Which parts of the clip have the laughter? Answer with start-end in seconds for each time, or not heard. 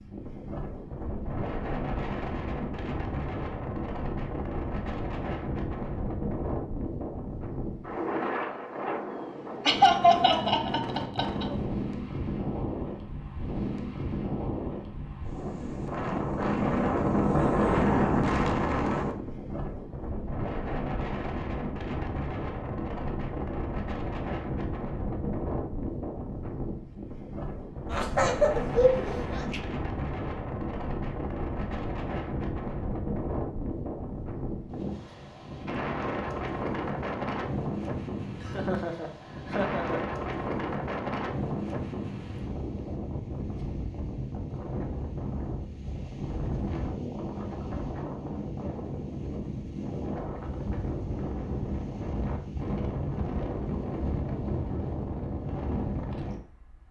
9.7-11.4, 27.9-29.6, 38.4-40.0.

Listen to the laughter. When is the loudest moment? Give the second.
10 s.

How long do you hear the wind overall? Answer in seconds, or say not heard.
57 s.